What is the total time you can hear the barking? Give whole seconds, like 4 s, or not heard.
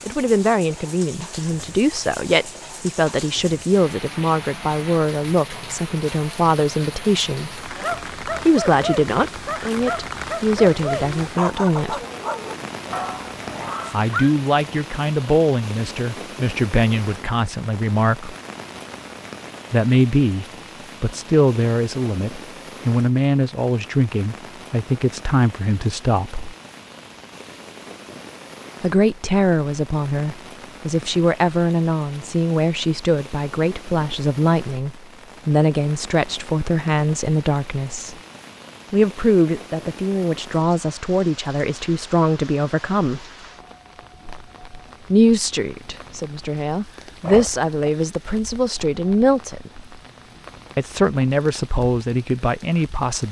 6 s.